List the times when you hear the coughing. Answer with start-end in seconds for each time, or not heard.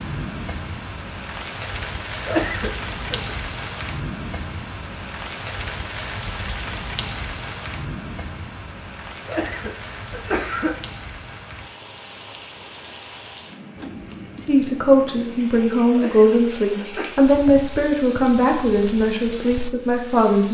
2.2-3.4, 9.2-10.8, 15.9-17.1.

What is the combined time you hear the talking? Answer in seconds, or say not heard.
6 s.